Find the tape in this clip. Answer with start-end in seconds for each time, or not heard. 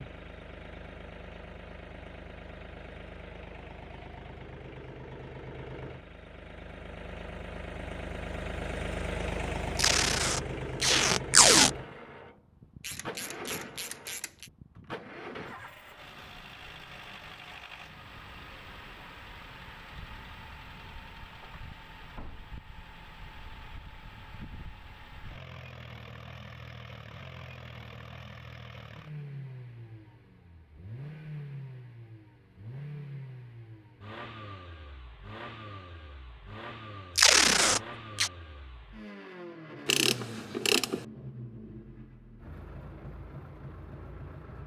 9.8-11.7, 37.1-38.3.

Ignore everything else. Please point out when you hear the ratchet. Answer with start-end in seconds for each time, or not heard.
12.8-14.5, 39.9-41.0.